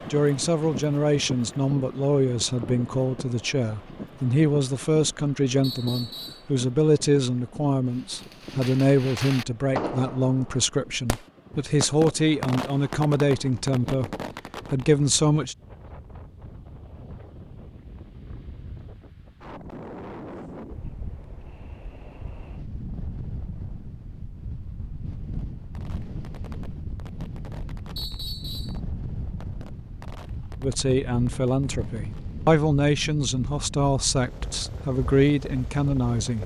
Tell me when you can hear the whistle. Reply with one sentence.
You can hear the whistle from 5.6 to 6.5 s and from 27.9 to 28.8 s.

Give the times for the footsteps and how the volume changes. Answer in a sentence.
You can't hear the footsteps here.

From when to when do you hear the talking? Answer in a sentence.
The talking can be heard from 0.1 to 14.1 s, from 14.7 to 15.6 s and from 30.6 to 36.4 s.